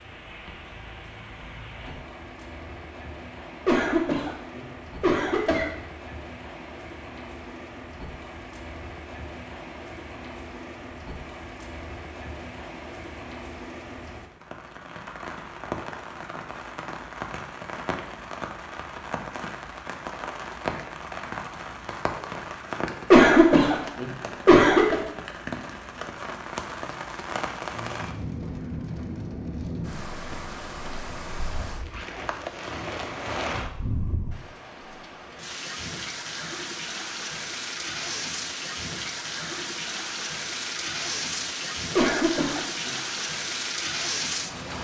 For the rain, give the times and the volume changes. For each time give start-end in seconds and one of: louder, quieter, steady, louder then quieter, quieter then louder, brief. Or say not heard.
0.0-44.7 louder.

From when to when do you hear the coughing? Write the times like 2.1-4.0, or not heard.
3.6-5.7, 23.1-24.9, 42.0-42.9.